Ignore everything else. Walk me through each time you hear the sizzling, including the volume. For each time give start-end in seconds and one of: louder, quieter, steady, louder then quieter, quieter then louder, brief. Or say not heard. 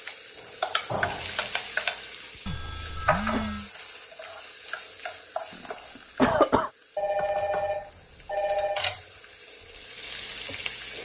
0.0-10.9 quieter then louder.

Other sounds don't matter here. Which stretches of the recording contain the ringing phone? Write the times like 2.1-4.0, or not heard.
2.5-3.7, 7.0-8.9.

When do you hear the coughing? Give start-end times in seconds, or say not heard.
2.6-3.5, 6.2-6.7.